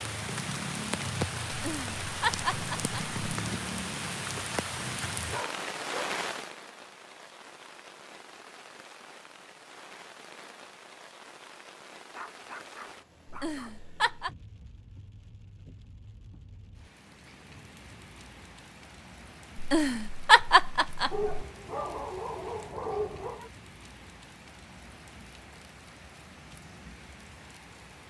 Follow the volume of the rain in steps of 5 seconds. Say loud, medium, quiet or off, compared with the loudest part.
loud, medium, quiet, quiet, quiet, quiet.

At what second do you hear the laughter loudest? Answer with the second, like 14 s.
20 s.